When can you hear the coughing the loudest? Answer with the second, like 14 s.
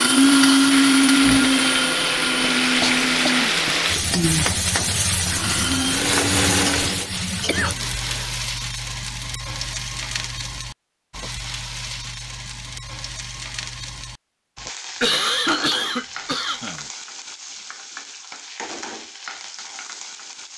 15 s.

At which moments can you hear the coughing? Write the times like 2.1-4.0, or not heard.
2.8-3.4, 7.5-8.2, 15.0-16.9.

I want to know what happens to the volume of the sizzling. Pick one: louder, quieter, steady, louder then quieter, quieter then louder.
quieter.